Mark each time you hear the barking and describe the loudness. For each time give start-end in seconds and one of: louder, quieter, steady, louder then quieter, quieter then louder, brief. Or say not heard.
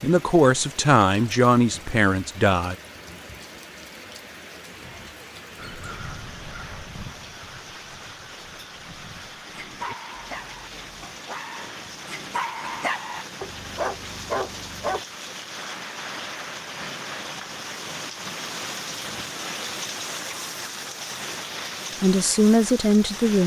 9.4-15.0 louder.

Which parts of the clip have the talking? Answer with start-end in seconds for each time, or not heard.
0.0-2.8, 22.0-23.4.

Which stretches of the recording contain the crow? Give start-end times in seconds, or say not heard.
5.5-10.9.